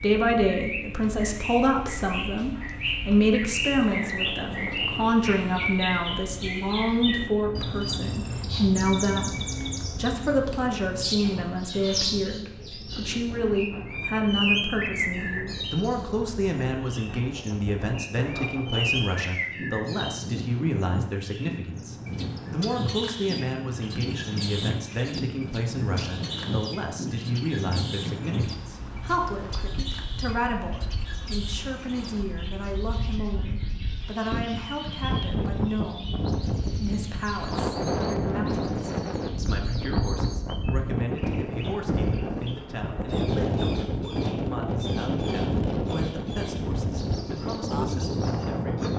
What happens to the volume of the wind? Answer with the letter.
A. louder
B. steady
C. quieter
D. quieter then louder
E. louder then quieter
A.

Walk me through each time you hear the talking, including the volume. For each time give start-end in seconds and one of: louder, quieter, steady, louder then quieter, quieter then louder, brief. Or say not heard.
0.0-48.9 quieter.